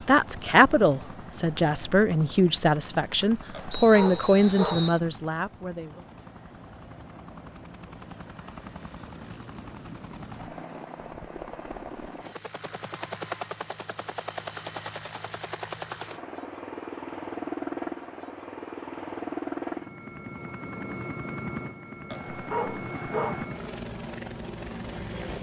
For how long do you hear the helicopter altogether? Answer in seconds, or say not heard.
25 s.